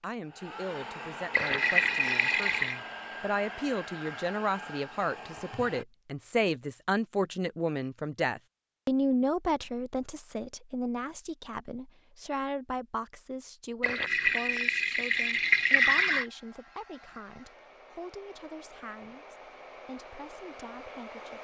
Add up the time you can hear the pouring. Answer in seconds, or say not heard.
4 s.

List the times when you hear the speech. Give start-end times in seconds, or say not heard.
0.0-21.3.